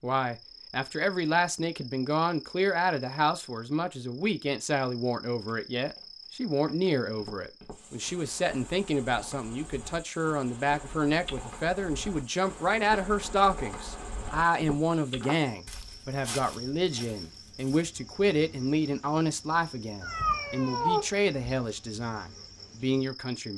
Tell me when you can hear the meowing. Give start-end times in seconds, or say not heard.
20.0-21.6.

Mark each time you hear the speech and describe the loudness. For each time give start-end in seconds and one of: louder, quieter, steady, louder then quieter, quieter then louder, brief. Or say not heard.
0.0-23.5 steady.